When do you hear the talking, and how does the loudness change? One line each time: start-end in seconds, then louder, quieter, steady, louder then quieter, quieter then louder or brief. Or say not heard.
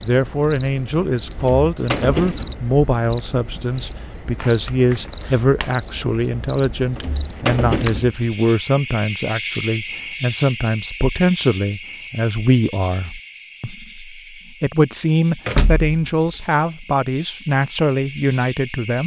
0.0-19.0 steady.